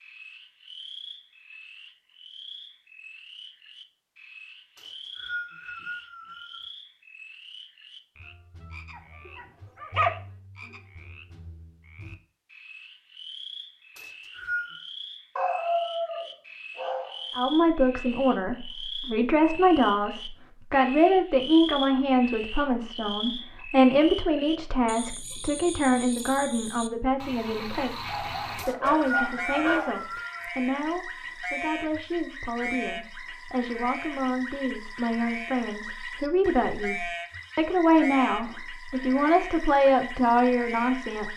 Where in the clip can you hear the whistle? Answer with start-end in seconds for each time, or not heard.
4.8-6.7, 13.9-14.8, 28.6-30.4.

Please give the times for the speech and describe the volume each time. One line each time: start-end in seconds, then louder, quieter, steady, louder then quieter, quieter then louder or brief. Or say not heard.
17.4-41.3 quieter then louder.